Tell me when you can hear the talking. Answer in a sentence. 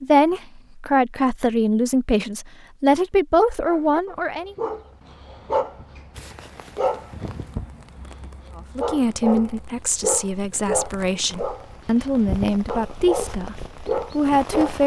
The talking can be heard from 0.0 to 4.5 s and from 8.6 to 14.8 s.